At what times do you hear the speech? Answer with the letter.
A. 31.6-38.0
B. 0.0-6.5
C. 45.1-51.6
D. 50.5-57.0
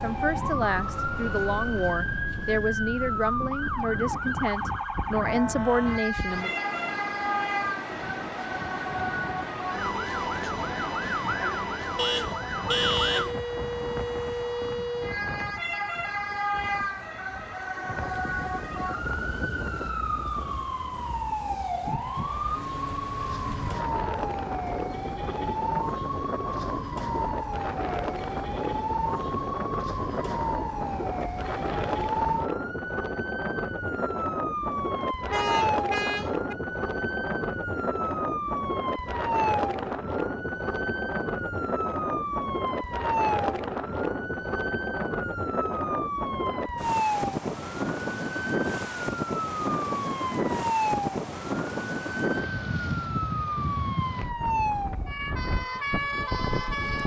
B.